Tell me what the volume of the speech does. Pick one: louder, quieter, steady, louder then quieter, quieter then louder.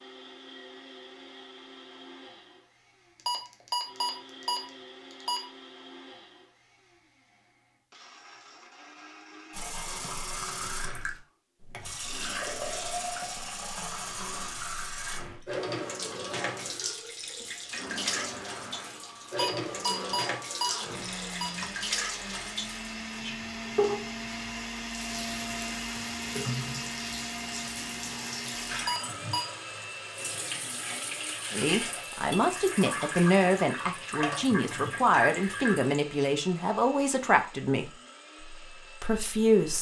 quieter.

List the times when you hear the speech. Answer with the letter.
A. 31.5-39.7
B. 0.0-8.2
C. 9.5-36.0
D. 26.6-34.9
A.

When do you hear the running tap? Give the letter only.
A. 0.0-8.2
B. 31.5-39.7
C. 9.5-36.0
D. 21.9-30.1
C.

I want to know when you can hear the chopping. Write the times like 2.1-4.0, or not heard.
not heard.